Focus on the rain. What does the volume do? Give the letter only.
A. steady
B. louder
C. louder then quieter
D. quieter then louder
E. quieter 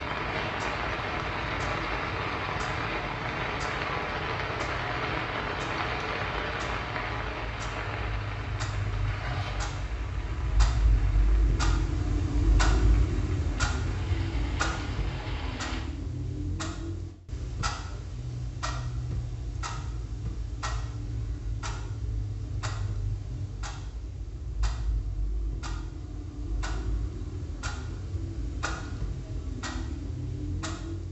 E.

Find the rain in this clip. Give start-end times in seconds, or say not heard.
0.0-15.8.